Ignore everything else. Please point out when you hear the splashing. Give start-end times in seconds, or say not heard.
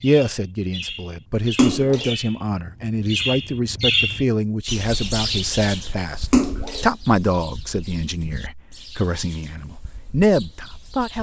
1.6-2.1, 6.3-6.8.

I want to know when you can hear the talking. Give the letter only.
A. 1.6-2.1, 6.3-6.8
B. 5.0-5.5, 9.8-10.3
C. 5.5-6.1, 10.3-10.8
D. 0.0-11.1
D.